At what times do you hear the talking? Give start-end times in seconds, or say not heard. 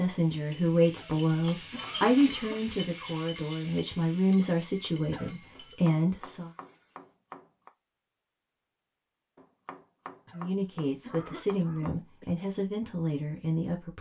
0.0-6.5, 10.3-13.9.